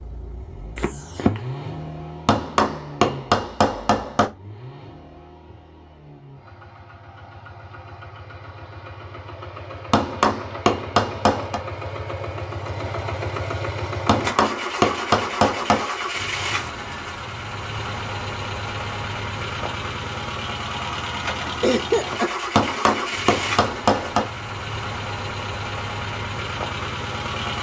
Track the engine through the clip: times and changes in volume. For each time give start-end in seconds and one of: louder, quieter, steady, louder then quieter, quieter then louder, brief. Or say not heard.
0.0-27.5 louder.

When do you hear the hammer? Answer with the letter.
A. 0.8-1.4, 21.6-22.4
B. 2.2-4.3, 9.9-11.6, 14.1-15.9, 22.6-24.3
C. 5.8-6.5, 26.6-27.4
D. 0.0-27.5
B.